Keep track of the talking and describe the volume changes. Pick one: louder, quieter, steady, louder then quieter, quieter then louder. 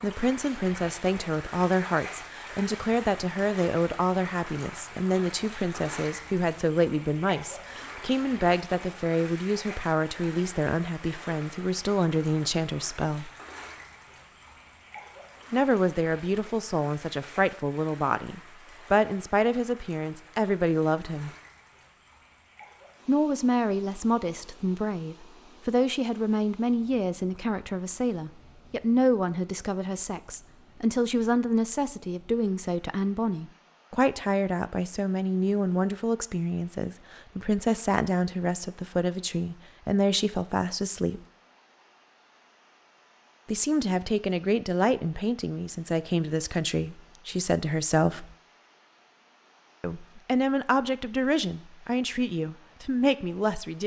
steady.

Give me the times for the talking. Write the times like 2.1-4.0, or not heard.
0.0-13.3, 15.5-21.3, 23.1-41.2, 43.5-48.2, 49.8-53.8.